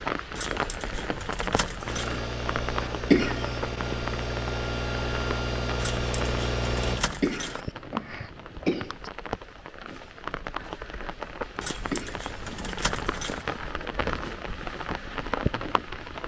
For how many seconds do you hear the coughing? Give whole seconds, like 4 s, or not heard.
3 s.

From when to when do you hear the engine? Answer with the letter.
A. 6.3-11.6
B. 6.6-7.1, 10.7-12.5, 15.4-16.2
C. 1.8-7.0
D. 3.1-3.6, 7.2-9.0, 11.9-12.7
C.